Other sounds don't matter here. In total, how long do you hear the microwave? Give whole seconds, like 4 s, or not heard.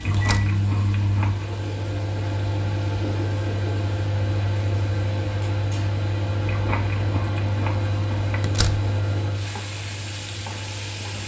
11 s.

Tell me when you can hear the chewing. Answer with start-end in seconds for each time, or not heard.
0.0-1.6, 6.5-8.4.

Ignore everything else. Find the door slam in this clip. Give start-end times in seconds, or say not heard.
0.1-0.6, 8.4-8.9.